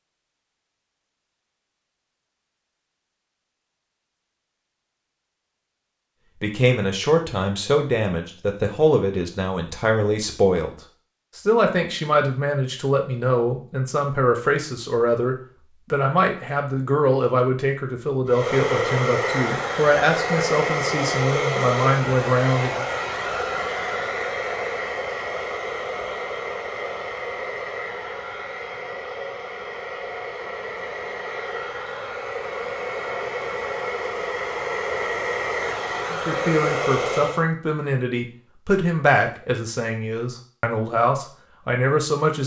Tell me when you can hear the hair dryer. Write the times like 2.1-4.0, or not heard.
18.2-37.5.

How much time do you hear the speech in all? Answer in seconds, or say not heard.
22 s.